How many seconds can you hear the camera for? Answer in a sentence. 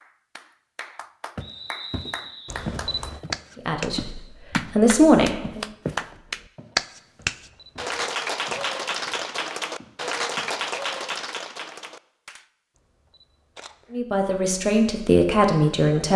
You can hear the camera for 3 seconds altogether.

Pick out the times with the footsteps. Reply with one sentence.
You can hear the footsteps from 1.4 to 4.8 s and from 5.4 to 10.6 s.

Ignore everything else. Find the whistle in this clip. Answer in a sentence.
You can hear the whistle from 1.4 to 2.7 s.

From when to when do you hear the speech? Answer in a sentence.
The speech can be heard from 3.6 to 5.7 s and from 13.9 to 16.1 s.